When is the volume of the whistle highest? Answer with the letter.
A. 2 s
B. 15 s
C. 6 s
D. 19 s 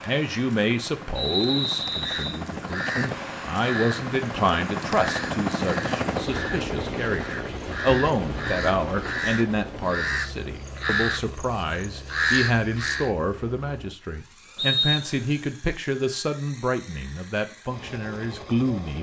B.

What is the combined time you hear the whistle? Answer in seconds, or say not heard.
2 s.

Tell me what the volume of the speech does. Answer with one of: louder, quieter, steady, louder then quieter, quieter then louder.
steady.